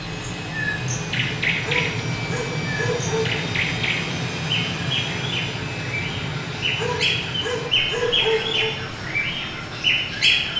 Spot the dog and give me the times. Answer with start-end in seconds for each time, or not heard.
1.6-3.4, 6.8-8.8.